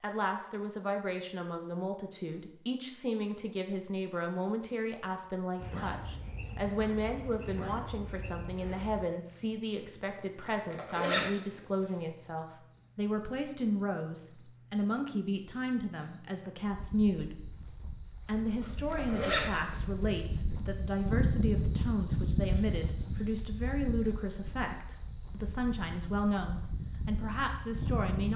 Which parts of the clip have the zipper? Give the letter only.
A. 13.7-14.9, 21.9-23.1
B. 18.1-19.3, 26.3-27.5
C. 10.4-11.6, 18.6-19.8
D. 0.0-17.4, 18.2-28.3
C.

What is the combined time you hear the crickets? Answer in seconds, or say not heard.
23 s.